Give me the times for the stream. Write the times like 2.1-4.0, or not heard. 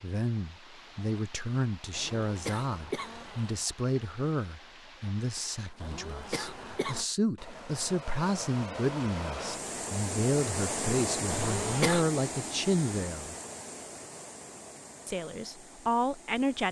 0.0-16.6.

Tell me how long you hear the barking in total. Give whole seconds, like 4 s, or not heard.
not heard.